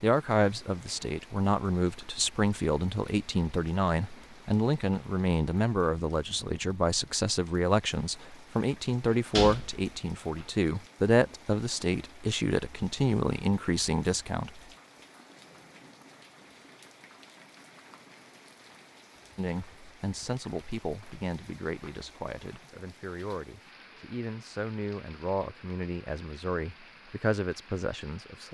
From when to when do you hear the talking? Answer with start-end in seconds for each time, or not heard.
0.0-14.6, 19.4-28.4.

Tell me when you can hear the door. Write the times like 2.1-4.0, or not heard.
9.3-10.4.